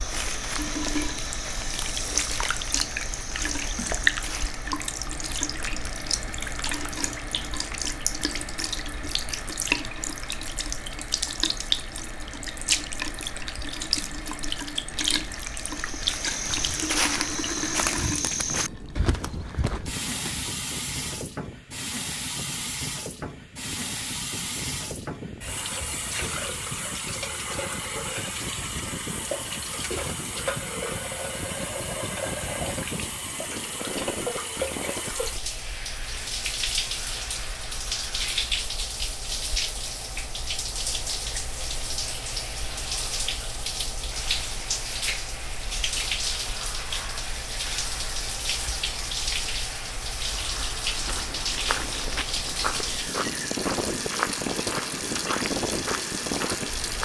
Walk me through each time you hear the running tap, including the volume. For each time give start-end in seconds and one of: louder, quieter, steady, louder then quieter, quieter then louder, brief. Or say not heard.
0.0-57.0 steady.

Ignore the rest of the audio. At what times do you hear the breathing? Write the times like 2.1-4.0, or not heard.
not heard.